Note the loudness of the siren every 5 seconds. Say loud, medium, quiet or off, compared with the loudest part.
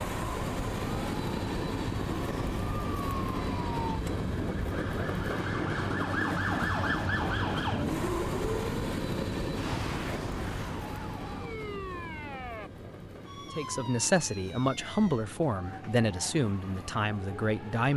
medium, loud, medium, quiet.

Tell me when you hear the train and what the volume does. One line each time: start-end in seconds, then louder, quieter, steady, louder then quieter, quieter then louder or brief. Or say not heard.
0.0-17.9 quieter.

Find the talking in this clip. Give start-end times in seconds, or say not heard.
13.6-17.9.